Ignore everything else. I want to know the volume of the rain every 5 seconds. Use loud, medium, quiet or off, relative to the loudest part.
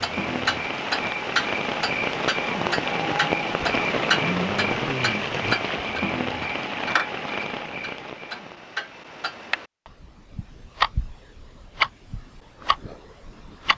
loud, loud, off.